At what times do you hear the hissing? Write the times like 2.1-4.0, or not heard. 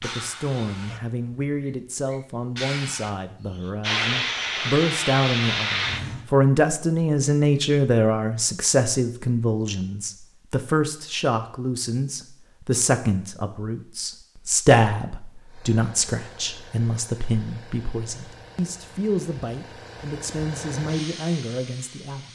0.0-6.3, 15.4-22.3.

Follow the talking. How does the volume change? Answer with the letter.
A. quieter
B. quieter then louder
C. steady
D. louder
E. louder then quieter
E.